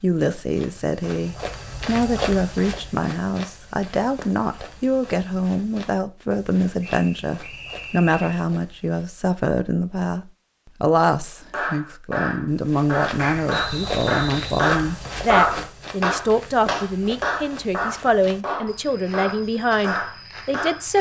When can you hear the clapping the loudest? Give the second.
15 s.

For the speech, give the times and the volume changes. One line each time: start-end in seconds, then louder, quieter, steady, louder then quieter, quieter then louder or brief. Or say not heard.
0.0-20.9 steady.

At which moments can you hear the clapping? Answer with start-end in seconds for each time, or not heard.
11.5-20.9.